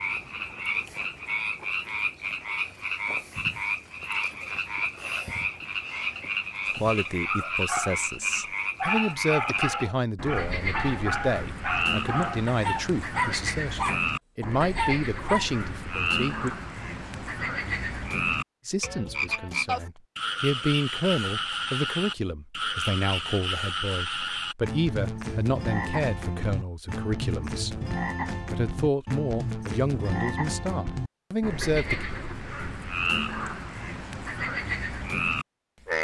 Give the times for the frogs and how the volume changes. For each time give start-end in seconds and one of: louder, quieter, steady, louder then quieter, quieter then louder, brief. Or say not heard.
0.0-35.9 steady.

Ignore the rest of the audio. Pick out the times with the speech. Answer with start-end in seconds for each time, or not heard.
6.8-16.6, 18.6-32.0.